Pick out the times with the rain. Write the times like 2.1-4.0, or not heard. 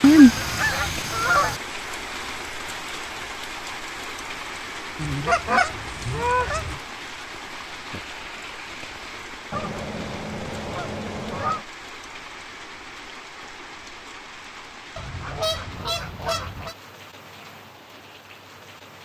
0.0-18.9.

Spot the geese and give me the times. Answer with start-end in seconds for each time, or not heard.
0.0-1.6, 5.0-6.8, 9.5-11.7, 14.9-16.8.